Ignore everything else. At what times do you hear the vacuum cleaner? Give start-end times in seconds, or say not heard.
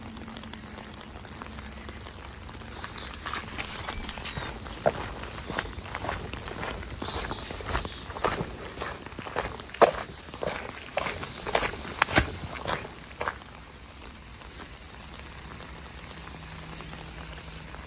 not heard.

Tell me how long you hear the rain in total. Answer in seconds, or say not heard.
18 s.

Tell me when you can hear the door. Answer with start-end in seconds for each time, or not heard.
3.5-4.5.